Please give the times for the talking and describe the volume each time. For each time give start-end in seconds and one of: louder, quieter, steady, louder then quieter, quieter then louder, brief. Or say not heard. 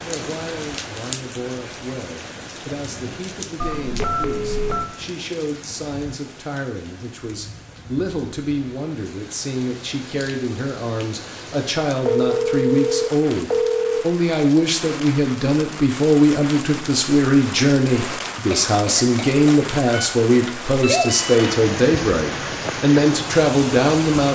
0.1-24.2 louder.